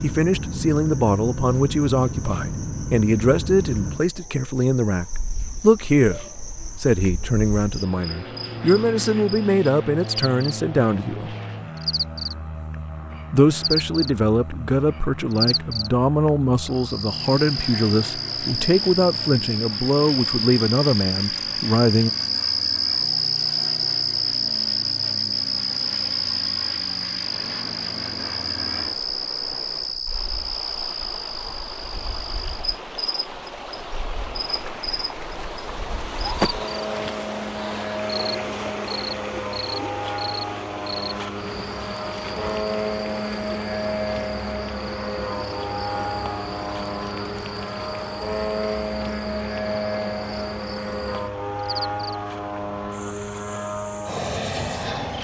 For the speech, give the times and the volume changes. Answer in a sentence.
You can hear the speech from 0.0 to 11.3 s, at a steady volume; and from 13.3 to 22.1 s, at a steady volume.